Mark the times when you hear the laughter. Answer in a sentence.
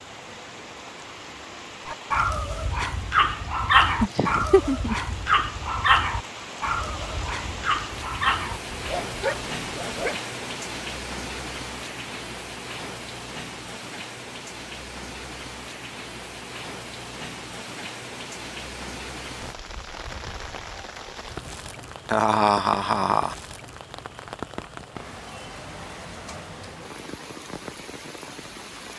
You can hear the laughter from 4.0 to 5.0 s and from 22.1 to 23.4 s.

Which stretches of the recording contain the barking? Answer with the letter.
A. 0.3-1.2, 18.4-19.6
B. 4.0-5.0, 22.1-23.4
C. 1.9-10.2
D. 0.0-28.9
C.